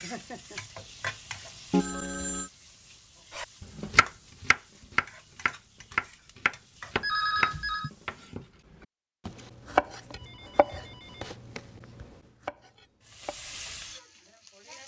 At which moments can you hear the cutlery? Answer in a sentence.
You can't hear the cutlery here.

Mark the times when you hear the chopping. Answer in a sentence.
You can hear the chopping from 3.3 to 8.4 s and from 9.2 to 13.6 s.